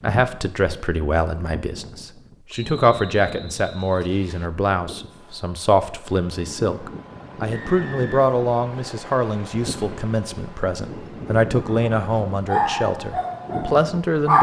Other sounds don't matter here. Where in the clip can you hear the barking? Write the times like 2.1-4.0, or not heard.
11.7-14.3.